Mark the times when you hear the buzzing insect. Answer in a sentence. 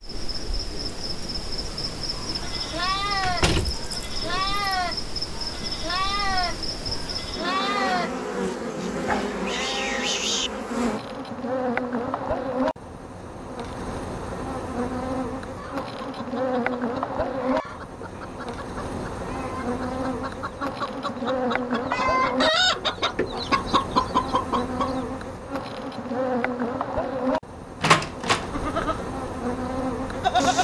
The buzzing insect can be heard from 0.0 to 30.5 s.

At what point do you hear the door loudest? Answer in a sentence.
The loudest moment of the door is at 28 seconds.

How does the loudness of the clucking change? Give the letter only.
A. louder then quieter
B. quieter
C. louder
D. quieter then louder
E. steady
C.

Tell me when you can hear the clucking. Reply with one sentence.
The clucking can be heard from 15.6 to 25.0 s.